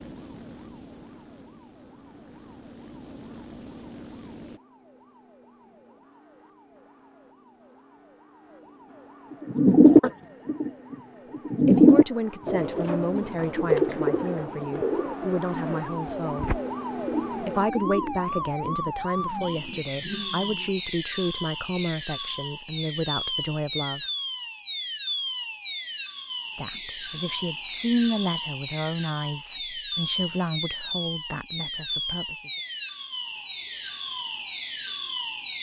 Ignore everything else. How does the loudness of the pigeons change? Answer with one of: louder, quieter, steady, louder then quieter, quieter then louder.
quieter.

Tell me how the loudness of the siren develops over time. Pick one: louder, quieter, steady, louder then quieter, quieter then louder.
louder.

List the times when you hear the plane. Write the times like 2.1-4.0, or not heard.
0.0-4.6.